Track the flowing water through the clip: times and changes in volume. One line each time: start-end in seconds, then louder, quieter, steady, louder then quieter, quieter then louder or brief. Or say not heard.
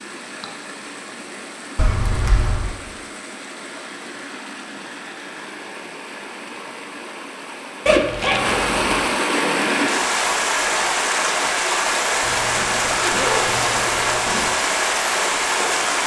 0.0-16.0 louder.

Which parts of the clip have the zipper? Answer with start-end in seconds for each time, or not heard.
1.8-2.7, 7.8-9.1, 12.2-14.6.